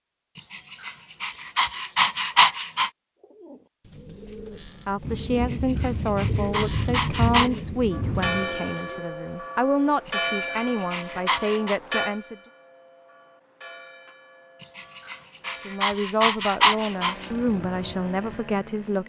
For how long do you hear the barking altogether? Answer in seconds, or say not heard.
9 s.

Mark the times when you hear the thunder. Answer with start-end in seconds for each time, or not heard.
5.0-8.5.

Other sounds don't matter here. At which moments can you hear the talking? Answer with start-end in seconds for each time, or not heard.
4.8-12.3, 15.6-19.0.